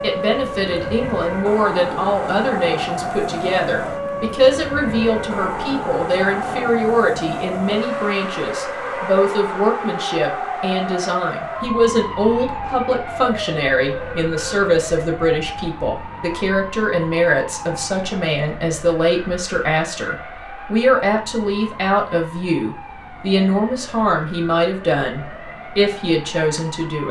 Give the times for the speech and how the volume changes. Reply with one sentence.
The speech can be heard from 0.0 to 27.0 s, at a steady volume.